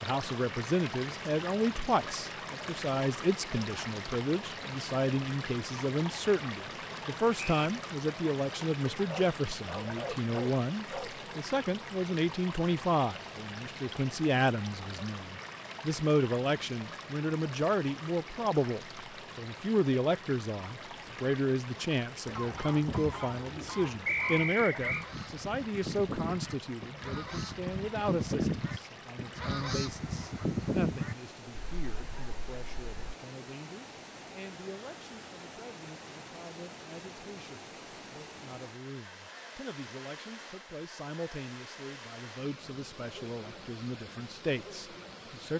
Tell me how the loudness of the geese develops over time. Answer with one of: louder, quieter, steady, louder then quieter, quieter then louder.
louder.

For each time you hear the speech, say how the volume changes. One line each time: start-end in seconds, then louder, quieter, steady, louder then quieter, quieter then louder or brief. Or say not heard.
0.0-45.5 quieter.